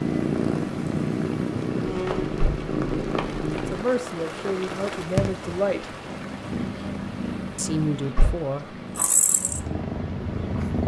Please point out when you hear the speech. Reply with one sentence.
You can hear the speech from 3.6 to 5.9 s and from 7.5 to 8.8 s.